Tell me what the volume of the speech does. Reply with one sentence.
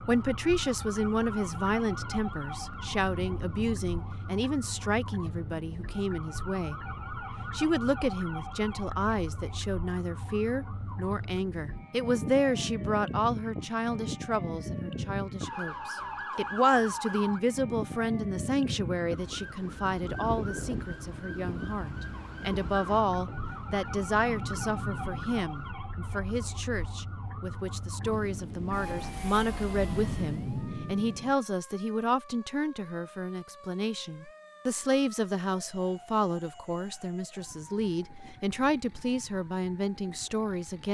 The loudness of the speech stays about the same.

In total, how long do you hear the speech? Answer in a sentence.
The speech can be heard for 41 seconds in total.